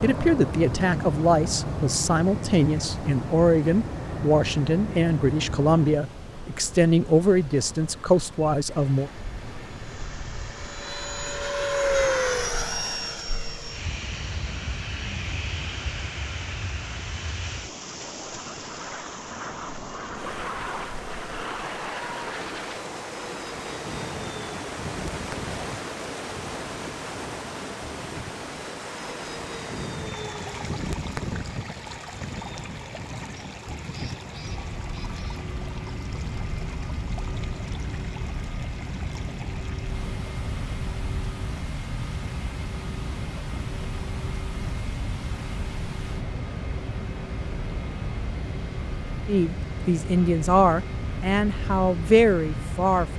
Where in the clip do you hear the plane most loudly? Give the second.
12 s.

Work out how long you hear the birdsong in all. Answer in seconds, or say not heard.
not heard.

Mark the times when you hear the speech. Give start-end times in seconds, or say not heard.
0.0-9.1, 49.2-53.1.